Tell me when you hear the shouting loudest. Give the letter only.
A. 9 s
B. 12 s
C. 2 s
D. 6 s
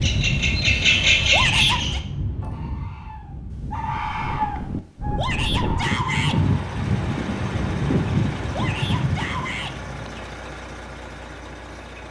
C.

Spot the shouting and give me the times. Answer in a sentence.
The shouting can be heard from 1.3 to 2.0 s, from 5.2 to 6.4 s and from 8.5 to 9.8 s.